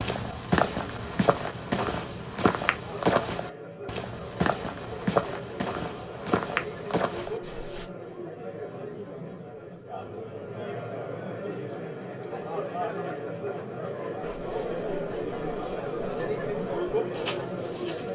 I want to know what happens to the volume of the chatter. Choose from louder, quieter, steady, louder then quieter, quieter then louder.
louder.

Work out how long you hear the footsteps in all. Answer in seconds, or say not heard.
12 s.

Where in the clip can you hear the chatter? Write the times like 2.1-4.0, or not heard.
0.1-18.1.